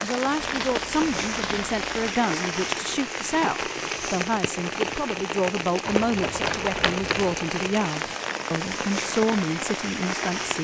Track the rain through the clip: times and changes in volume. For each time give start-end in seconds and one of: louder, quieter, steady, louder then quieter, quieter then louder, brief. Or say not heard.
0.0-10.5 steady.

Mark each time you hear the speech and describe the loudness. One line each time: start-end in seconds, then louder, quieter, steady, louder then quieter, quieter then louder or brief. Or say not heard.
0.0-10.5 steady.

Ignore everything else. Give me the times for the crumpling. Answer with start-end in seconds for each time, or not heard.
0.3-2.2, 5.8-7.4.